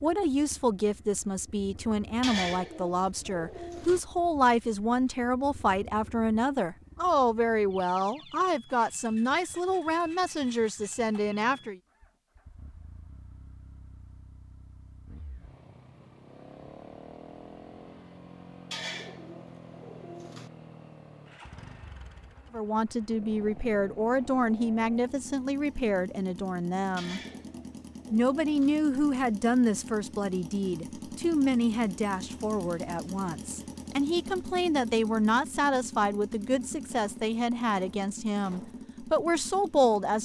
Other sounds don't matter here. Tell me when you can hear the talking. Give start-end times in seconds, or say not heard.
0.0-11.8, 22.5-27.2, 28.1-40.2.